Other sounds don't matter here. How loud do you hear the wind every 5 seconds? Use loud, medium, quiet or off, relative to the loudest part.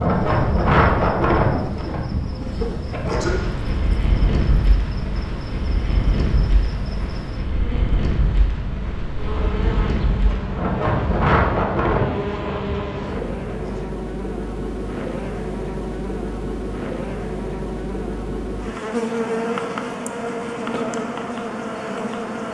loud, medium, loud, off, off.